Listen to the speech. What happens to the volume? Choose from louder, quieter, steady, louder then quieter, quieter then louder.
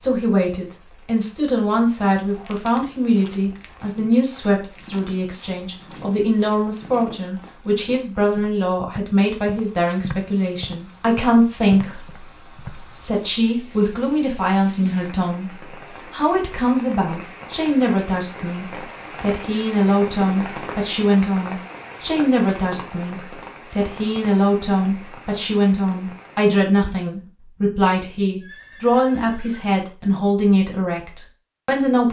steady.